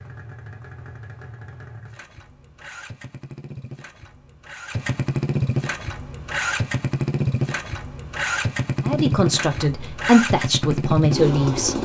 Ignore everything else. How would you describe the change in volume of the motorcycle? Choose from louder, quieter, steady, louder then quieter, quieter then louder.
louder.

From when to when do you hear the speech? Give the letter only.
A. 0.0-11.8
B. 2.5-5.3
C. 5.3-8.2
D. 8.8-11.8
D.